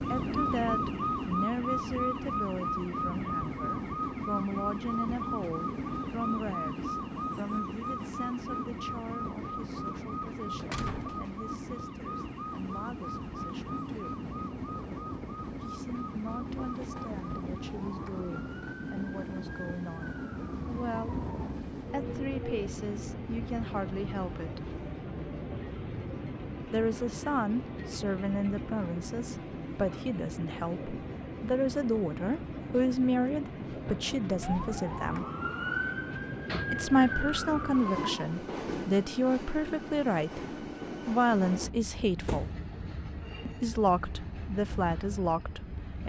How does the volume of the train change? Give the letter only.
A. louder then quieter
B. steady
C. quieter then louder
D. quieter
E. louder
B.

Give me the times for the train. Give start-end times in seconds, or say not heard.
0.0-46.0.